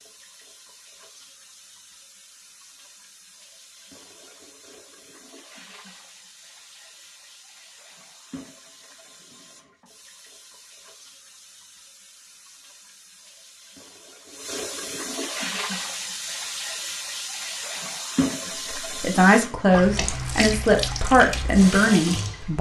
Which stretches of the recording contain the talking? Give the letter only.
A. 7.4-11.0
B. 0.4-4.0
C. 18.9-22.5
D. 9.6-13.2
C.